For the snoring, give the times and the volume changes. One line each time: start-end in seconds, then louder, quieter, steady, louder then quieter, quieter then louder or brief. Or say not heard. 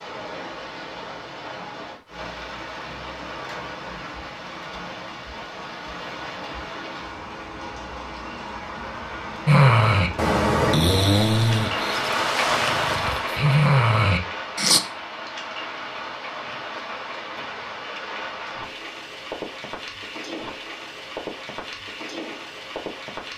9.4-14.8 quieter then louder.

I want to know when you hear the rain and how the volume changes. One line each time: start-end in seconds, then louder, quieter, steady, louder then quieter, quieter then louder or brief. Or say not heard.
0.0-23.3 louder then quieter.